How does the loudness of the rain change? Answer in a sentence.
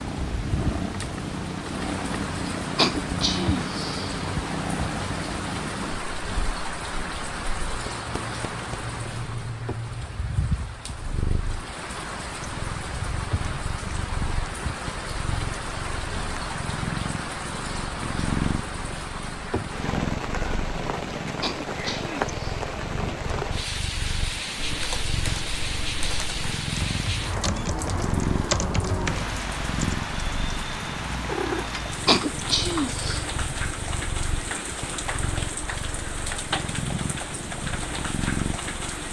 The loudness of the rain stays about the same.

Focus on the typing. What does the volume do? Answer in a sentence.
The volume of the typing goes up.